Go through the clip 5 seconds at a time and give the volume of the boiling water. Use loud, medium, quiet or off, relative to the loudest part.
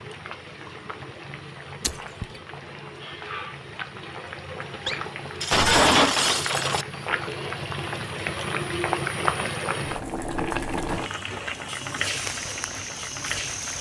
medium, loud, loud.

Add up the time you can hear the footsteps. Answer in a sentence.
The footsteps can be heard for 2 seconds in total.